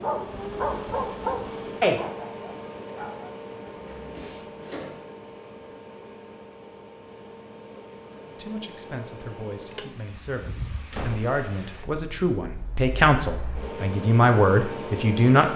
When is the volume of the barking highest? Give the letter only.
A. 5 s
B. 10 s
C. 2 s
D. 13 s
C.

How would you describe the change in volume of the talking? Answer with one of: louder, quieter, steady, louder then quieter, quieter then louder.
louder.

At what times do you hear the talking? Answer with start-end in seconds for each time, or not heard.
8.2-15.5.